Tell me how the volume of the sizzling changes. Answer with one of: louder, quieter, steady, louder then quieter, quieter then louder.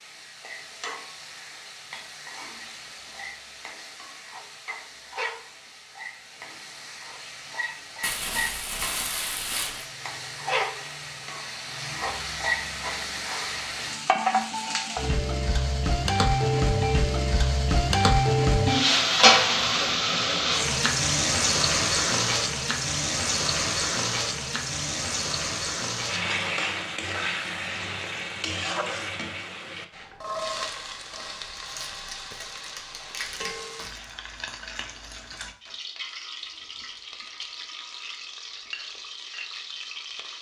louder then quieter.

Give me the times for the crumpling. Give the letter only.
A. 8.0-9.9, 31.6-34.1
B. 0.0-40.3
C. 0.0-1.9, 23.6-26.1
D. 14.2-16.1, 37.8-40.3
A.